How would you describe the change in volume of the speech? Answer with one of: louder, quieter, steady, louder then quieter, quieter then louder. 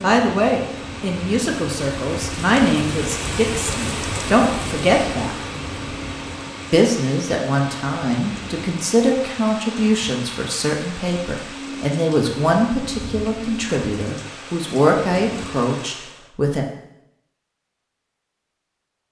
steady.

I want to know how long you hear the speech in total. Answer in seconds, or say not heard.
15 s.